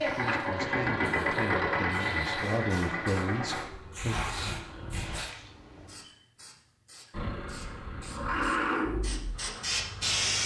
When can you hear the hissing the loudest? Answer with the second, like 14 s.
10 s.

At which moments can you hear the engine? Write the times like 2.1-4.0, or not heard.
0.0-5.2, 7.1-10.4.